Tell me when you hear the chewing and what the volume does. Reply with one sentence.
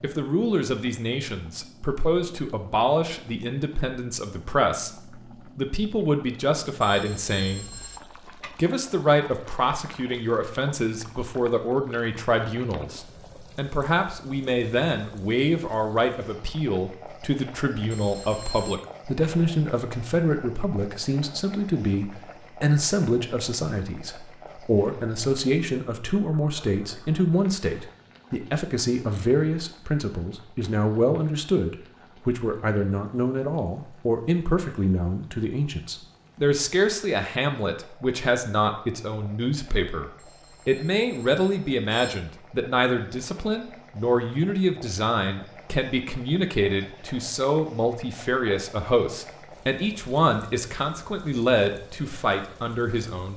You can't hear the chewing here.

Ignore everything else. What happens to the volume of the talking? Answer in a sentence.
The loudness of the talking stays about the same.